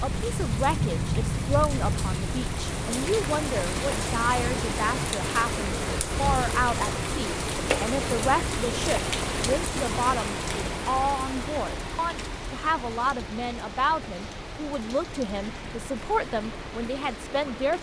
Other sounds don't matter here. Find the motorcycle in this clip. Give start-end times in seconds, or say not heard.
not heard.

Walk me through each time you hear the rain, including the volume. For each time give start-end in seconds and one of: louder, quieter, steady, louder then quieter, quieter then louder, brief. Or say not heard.
0.0-17.7 quieter.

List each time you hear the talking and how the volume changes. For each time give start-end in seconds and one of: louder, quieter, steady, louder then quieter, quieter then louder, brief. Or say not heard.
0.0-17.7 steady.